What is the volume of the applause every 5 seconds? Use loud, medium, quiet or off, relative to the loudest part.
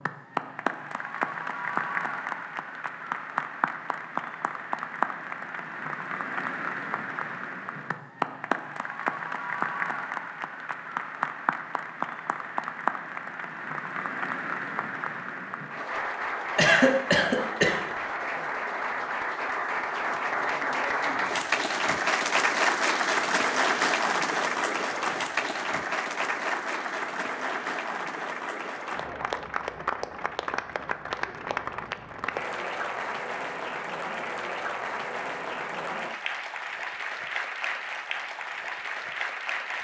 medium, medium, medium, medium, loud, medium, medium, medium.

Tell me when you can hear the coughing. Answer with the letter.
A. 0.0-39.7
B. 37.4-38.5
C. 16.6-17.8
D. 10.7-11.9
C.